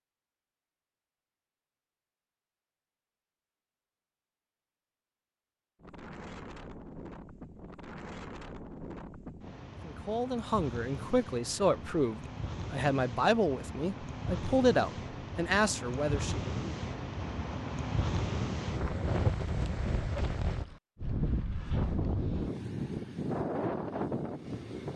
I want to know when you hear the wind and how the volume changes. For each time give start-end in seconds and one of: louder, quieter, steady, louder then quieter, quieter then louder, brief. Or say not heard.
5.8-24.9 louder.